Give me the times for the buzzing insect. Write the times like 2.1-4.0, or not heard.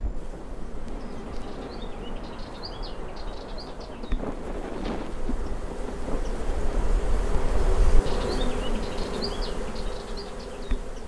0.0-11.0.